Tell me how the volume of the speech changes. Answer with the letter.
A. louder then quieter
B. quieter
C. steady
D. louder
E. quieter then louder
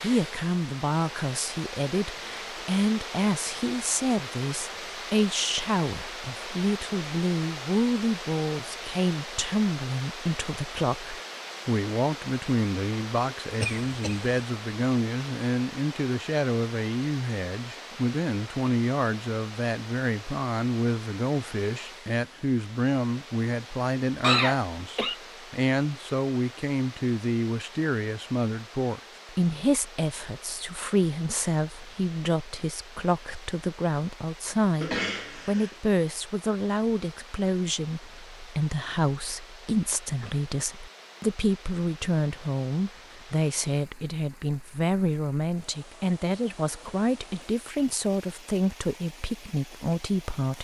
C.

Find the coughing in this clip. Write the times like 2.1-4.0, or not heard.
13.6-14.3, 24.2-25.1, 34.8-35.8.